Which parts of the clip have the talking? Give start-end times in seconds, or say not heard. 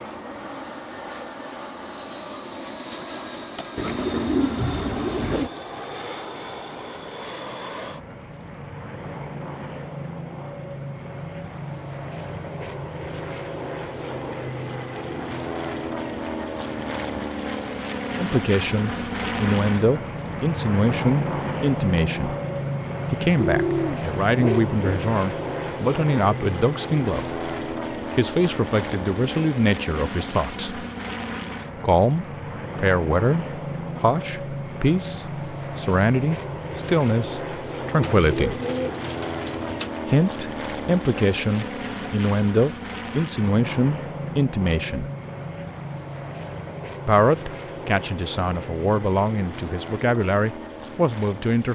18.1-22.4, 23.1-27.4, 28.1-30.9, 31.8-38.6, 40.0-45.1, 47.0-51.7.